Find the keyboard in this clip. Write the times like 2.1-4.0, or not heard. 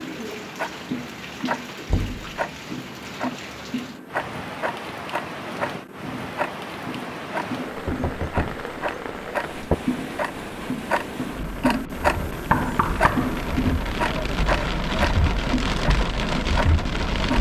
not heard.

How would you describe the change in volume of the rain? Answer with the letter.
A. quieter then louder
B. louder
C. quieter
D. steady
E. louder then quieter
B.